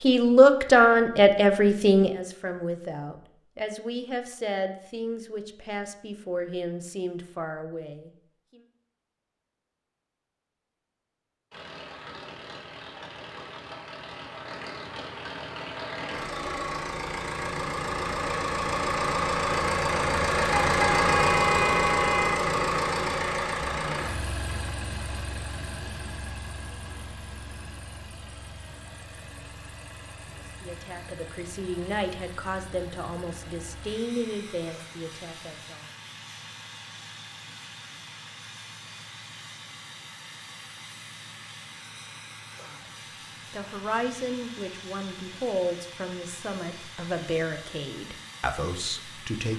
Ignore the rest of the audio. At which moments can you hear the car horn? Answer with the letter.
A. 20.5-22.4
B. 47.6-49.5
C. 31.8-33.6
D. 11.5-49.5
A.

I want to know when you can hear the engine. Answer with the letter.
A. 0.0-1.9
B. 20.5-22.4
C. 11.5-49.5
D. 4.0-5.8
C.